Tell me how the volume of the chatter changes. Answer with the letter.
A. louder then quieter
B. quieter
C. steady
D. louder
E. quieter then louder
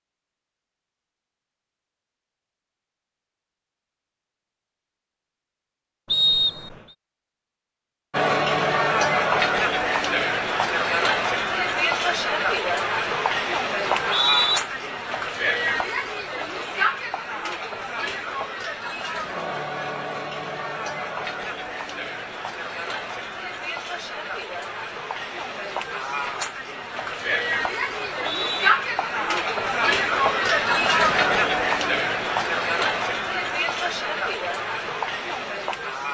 E.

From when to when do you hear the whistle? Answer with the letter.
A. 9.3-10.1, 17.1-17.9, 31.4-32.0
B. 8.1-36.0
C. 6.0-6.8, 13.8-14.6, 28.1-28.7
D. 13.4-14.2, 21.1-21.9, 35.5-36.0
C.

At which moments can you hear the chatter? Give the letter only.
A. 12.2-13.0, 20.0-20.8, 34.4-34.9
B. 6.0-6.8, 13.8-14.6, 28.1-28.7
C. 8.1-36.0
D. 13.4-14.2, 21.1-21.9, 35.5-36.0
C.